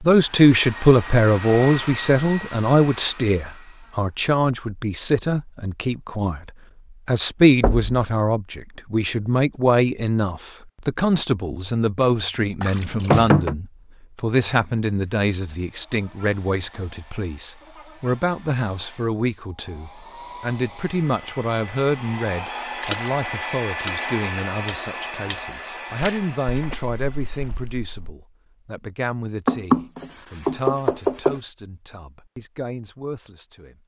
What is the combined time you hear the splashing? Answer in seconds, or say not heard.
5 s.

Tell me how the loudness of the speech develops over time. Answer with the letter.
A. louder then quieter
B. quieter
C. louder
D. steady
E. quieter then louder
B.